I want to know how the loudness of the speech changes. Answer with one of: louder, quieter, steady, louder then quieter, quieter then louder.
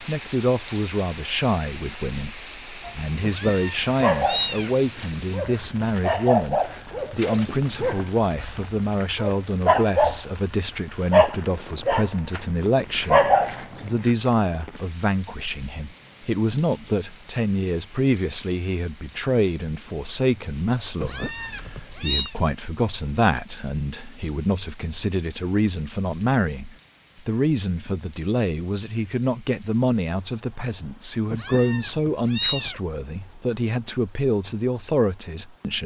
steady.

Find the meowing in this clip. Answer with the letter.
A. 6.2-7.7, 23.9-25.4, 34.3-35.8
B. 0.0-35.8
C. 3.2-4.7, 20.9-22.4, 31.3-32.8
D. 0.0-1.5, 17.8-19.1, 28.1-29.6
C.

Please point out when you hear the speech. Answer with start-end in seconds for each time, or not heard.
0.0-35.8.